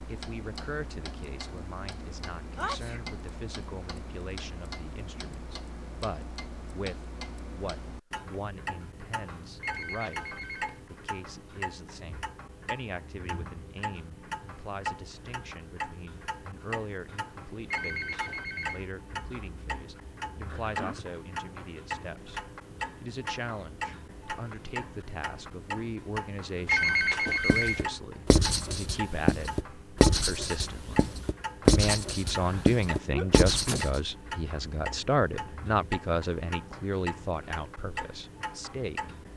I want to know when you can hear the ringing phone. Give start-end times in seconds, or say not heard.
9.6-10.8, 17.6-18.9, 26.6-27.9.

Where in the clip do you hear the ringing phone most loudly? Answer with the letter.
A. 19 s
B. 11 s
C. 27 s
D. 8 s
C.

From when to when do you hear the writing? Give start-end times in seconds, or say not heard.
27.4-34.0.